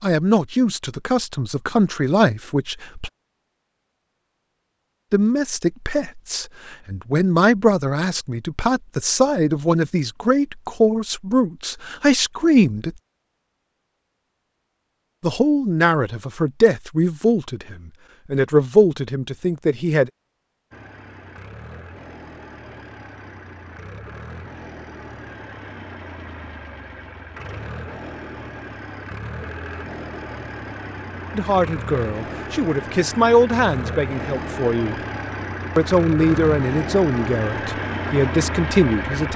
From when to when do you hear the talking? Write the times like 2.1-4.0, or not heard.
0.0-3.1, 5.1-12.9, 15.2-20.1, 31.3-35.0, 35.8-39.3.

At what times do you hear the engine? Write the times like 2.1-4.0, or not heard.
20.7-39.3.